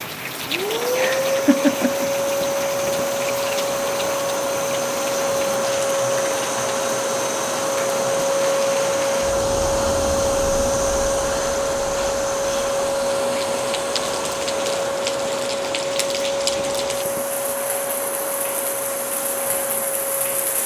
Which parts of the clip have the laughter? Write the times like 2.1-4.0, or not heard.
0.9-2.0.